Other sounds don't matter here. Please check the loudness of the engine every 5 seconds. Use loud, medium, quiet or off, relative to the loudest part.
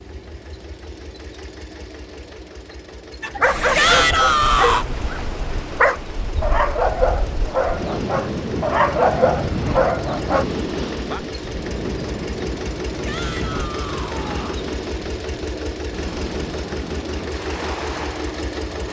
medium, medium, loud, loud.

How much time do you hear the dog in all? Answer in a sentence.
You can hear the dog for 7 seconds altogether.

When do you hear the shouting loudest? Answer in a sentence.
The volume of the shouting peaks at 4 seconds.